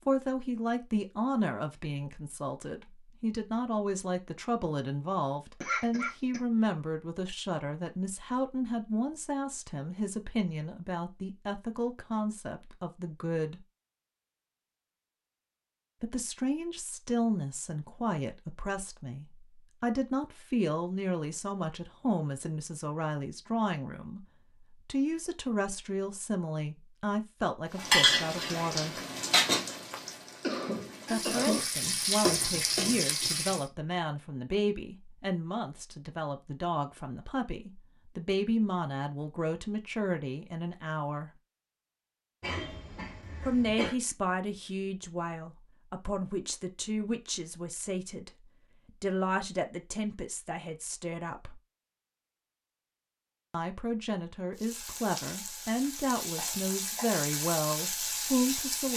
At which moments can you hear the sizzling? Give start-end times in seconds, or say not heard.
27.8-33.6, 54.5-58.9.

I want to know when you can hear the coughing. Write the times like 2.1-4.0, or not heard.
5.6-6.4, 30.4-31.6, 42.4-44.0.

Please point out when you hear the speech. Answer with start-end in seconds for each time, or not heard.
0.1-13.7, 16.0-28.9, 31.1-41.3, 43.4-48.3, 49.0-51.6, 53.5-58.9.